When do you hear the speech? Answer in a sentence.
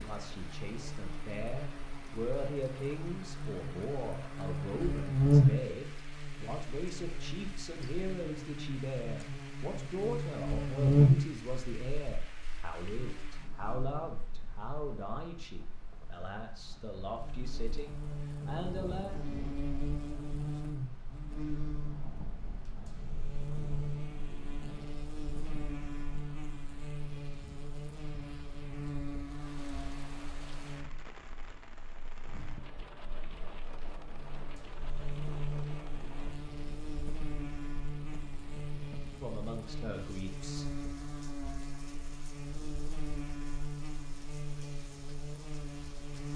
You can hear the speech from 0.0 to 19.1 s and from 39.1 to 40.6 s.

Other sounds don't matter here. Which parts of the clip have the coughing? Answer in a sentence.
You can't hear the coughing here.